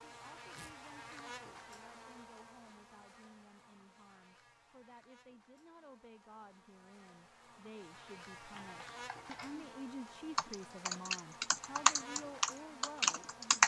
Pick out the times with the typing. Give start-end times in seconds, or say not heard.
8.5-9.6, 10.3-13.6.